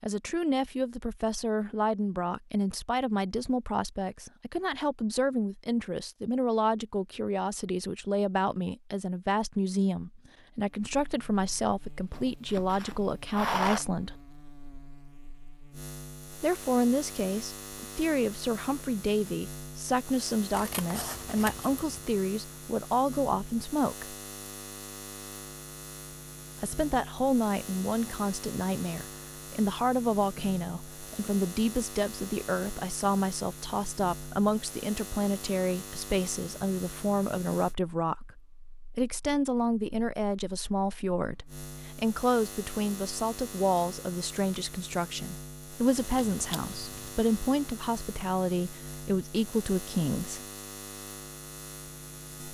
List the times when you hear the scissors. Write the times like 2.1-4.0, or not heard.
12.1-13.8, 20.5-22.1, 46.0-47.1.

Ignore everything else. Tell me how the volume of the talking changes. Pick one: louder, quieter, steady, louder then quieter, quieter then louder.
steady.